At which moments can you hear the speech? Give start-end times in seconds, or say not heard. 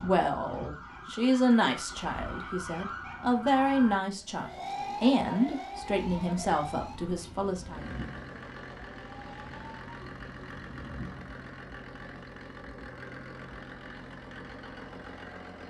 0.0-7.8.